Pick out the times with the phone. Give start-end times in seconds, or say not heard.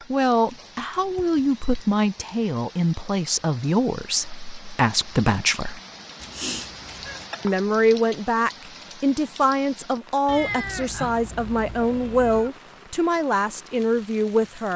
not heard.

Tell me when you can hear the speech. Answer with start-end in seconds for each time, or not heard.
0.1-5.8, 7.4-14.7.